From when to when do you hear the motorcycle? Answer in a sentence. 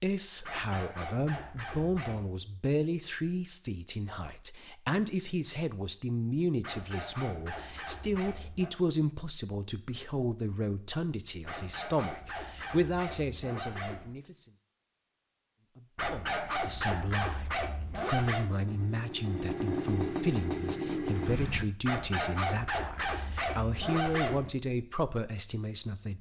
The motorcycle can be heard from 18.4 to 21.6 s.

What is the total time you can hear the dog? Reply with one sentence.
You can hear the dog for 12 seconds altogether.